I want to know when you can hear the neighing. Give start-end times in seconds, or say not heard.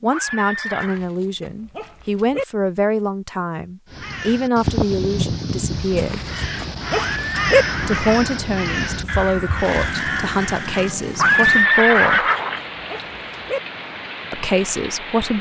0.1-1.0, 7.0-8.2, 11.2-12.6.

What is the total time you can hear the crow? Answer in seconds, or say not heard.
7 s.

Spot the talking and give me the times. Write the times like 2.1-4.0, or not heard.
0.0-6.2, 7.8-12.3, 14.3-15.3.